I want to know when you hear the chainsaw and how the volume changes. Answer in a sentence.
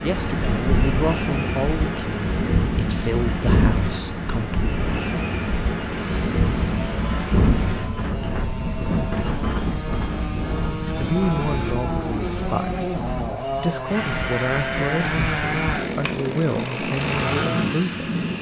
You can hear the chainsaw from 5.9 to 18.3 s, getting louder.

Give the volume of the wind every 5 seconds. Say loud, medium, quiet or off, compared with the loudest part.
loud, loud, medium, medium.